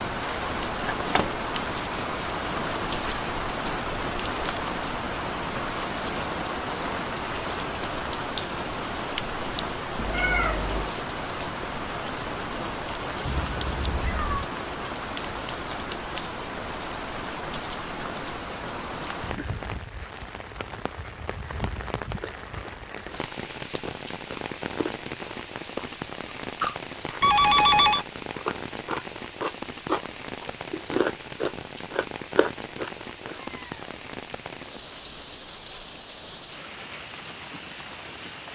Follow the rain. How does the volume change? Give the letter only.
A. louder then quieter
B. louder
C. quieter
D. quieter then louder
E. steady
C.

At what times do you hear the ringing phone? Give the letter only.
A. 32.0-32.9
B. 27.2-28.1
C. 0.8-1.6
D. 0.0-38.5
B.